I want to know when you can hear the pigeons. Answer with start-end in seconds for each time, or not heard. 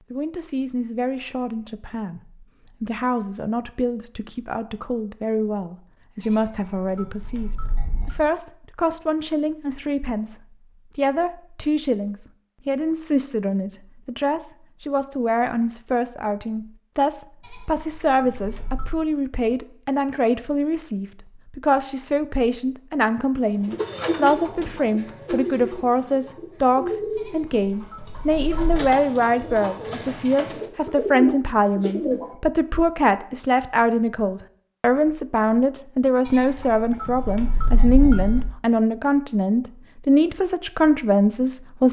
23.6-32.3.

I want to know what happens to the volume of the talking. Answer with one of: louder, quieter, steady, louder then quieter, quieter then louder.
louder.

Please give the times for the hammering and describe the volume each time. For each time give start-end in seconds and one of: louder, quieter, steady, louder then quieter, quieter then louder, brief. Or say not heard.
not heard.